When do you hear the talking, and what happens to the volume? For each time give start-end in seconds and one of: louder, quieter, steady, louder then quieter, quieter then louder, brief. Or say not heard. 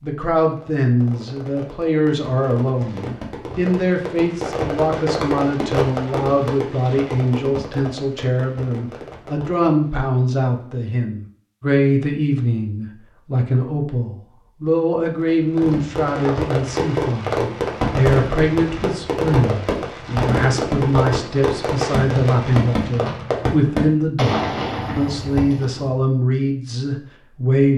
0.0-27.7 steady.